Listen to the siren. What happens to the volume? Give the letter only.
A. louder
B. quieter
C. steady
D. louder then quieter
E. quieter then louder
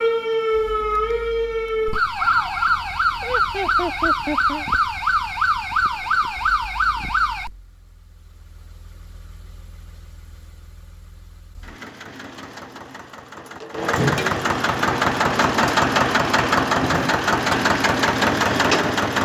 C.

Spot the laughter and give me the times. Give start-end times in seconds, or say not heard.
3.2-4.7.